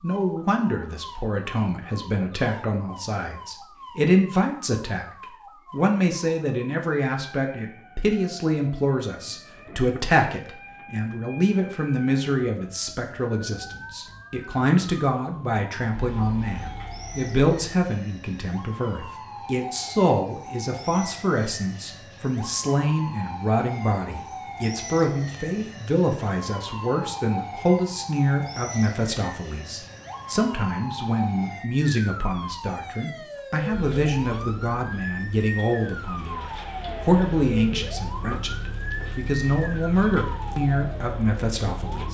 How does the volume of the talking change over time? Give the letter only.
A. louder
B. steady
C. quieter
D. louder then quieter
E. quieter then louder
B.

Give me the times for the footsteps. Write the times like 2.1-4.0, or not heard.
not heard.